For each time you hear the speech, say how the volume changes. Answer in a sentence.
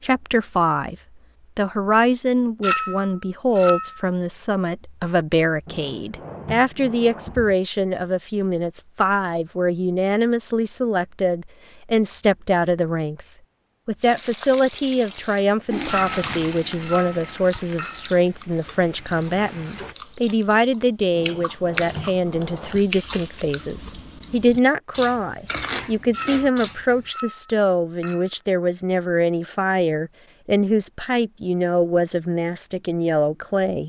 You can hear the speech briefly from 0.0 to 0.9 s; and from 1.6 to 33.8 s, at a steady volume.